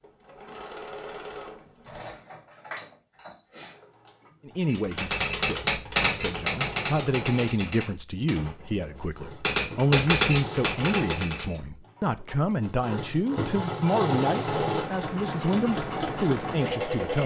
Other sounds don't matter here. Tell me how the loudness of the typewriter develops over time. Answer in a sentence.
The volume of the typewriter goes down, then up.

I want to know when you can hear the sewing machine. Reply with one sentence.
The sewing machine can be heard from 0.0 to 17.2 s.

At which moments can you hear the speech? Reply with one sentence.
The speech can be heard from 4.5 to 17.2 s.